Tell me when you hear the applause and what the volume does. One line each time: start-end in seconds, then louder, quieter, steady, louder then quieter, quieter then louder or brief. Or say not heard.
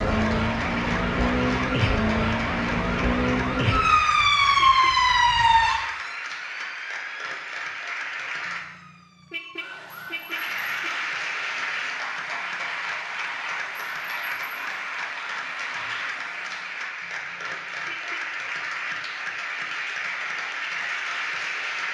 0.0-8.6 steady
10.3-21.8 steady.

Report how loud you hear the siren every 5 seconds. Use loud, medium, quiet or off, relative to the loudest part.
loud, loud, quiet, quiet, off.